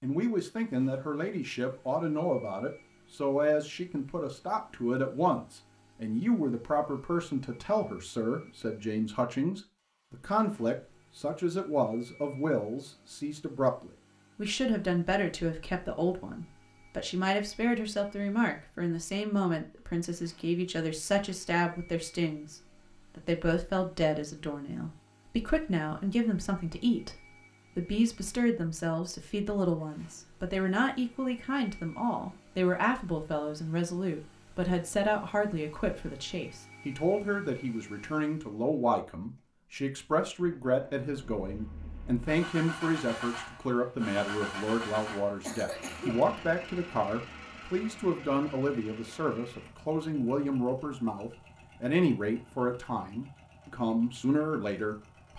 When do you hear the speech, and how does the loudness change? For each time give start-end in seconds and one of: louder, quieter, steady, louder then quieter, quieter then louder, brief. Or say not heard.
0.0-55.3 steady.